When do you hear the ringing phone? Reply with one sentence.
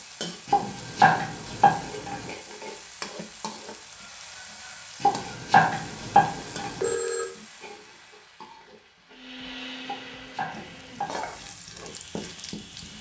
You can hear the ringing phone from 6.3 to 7.2 s.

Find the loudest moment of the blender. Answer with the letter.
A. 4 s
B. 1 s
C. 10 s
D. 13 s
C.